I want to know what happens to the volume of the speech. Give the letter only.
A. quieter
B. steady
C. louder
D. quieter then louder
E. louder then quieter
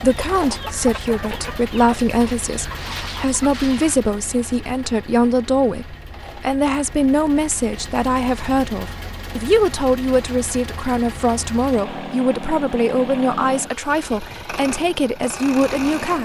B.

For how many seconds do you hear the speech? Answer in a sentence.
You can hear the speech for 16 seconds altogether.